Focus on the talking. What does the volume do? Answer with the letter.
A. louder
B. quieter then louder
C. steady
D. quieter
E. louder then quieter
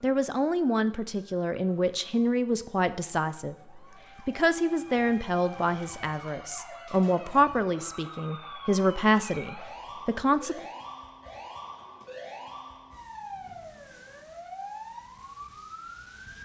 C.